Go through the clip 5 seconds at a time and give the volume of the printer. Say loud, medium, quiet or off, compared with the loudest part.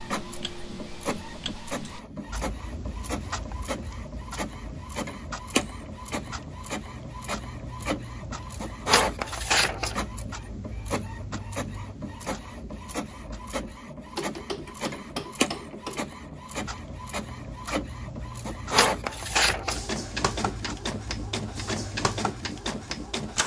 medium, loud, medium, loud, loud.